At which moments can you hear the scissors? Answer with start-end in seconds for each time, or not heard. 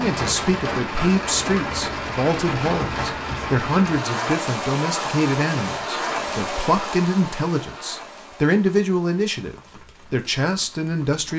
not heard.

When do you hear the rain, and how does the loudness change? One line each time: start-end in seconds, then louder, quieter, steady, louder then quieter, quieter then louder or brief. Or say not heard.
0.0-11.3 quieter.